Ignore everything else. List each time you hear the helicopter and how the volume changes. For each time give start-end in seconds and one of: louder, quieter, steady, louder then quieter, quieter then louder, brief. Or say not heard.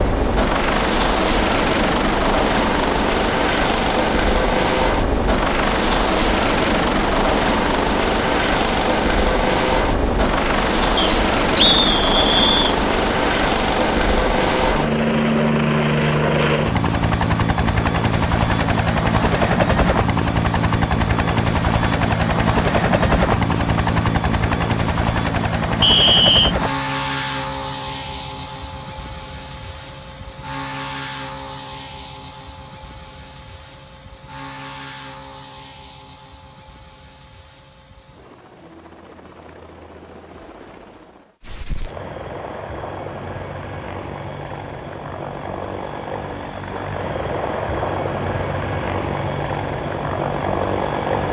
0.0-51.2 quieter then louder.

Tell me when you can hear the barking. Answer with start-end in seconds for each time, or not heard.
not heard.